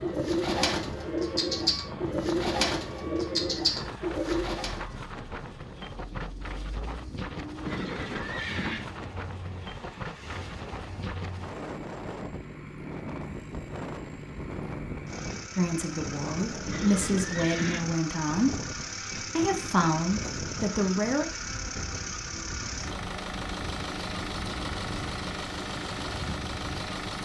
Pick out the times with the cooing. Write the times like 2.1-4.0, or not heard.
0.0-4.8.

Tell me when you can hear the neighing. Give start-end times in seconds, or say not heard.
7.7-8.8, 16.6-17.9.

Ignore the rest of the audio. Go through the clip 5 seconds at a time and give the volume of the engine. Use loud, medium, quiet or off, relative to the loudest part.
medium, quiet, medium, loud, loud, loud.